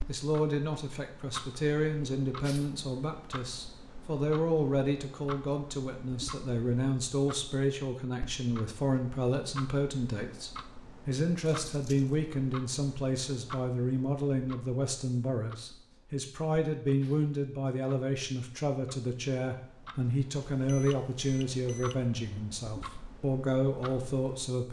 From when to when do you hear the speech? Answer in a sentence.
You can hear the speech from 0.1 to 24.6 s.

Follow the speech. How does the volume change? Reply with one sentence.
The volume of the speech stays about the same.